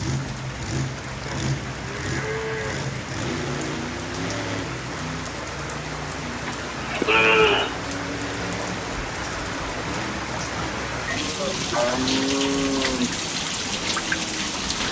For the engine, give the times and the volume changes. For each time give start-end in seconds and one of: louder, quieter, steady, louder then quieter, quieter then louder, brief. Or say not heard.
0.0-14.8 quieter.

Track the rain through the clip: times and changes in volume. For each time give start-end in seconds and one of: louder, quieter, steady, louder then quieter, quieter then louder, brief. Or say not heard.
0.0-14.8 louder.